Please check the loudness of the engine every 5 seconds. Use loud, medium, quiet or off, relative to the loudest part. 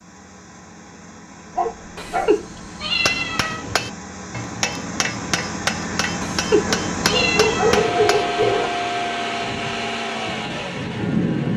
quiet, loud, loud.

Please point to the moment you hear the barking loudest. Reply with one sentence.
The loudest moment of the barking is at 8 seconds.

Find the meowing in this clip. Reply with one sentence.
You can hear the meowing from 1.9 to 3.6 s and from 6.2 to 7.8 s.